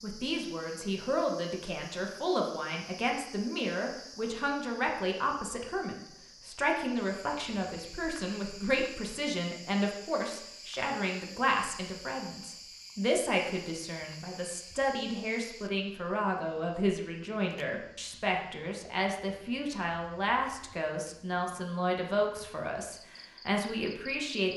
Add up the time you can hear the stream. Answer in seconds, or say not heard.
not heard.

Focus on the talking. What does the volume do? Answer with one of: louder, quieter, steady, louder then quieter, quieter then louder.
steady.